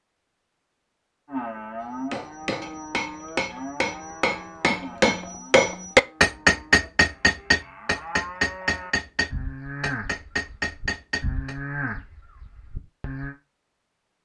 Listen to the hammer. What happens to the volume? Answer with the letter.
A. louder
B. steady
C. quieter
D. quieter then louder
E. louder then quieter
E.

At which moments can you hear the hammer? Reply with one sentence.
You can hear the hammer from 2.1 to 11.6 s.